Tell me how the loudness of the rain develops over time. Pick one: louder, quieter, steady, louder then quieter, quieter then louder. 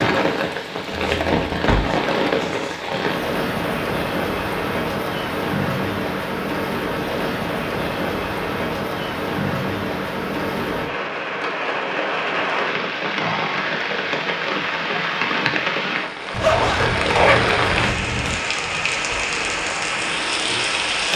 steady.